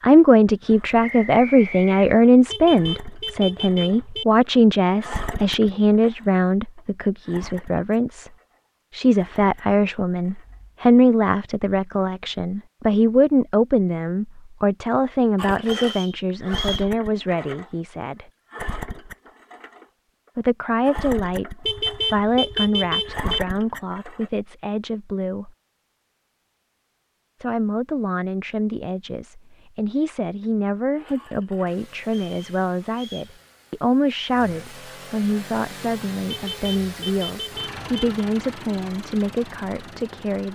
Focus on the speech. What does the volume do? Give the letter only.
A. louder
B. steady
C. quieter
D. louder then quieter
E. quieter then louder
C.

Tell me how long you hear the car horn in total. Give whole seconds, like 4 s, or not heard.
5 s.